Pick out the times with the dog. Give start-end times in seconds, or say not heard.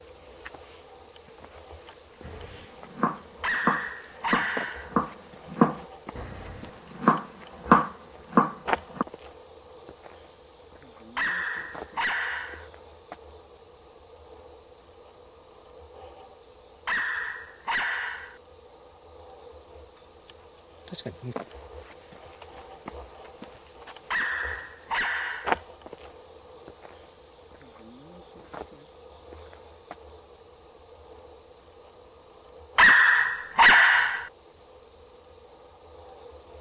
3.4-5.0, 11.2-12.7, 16.9-18.4, 24.1-25.6, 32.8-34.3.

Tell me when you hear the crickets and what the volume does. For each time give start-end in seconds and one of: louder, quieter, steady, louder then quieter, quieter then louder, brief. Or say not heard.
0.0-36.5 steady.